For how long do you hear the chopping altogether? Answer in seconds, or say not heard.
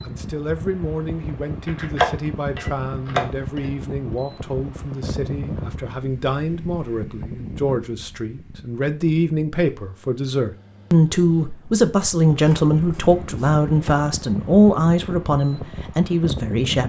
4 s.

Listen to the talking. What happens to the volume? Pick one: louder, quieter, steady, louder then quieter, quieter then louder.
louder.